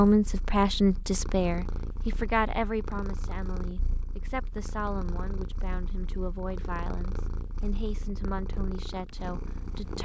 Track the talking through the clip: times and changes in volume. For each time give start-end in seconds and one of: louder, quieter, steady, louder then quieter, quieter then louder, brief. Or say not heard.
0.0-10.0 quieter.